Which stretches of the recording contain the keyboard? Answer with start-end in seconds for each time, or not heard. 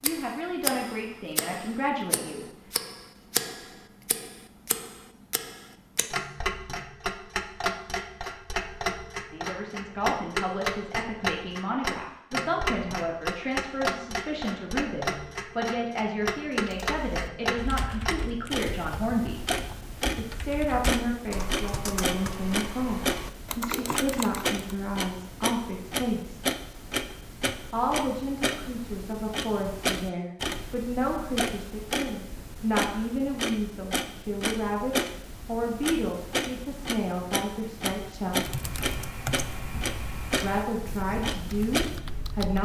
16.6-24.6, 38.2-42.6.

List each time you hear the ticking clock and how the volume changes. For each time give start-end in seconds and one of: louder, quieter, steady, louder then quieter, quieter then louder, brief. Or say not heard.
0.0-42.4 steady.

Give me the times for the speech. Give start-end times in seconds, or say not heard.
0.0-2.5, 9.3-19.4, 20.1-26.4, 27.7-38.6, 40.4-42.6.